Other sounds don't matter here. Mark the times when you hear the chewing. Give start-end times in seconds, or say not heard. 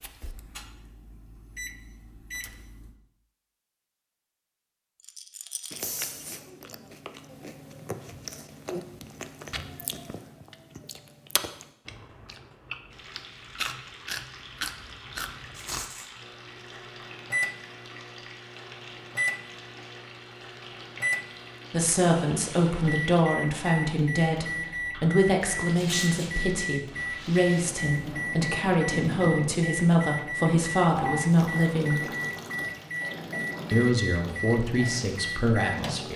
5.7-15.8.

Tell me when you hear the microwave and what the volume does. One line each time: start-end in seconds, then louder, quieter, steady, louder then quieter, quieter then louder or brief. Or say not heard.
0.0-3.0 brief
16.1-36.0 steady.